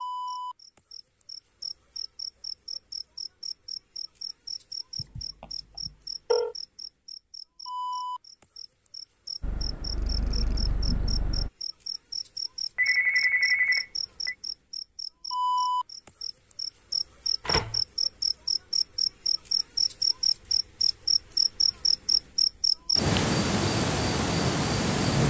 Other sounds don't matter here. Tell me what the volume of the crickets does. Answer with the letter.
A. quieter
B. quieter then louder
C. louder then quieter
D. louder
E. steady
D.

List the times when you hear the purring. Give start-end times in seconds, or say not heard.
9.4-11.5.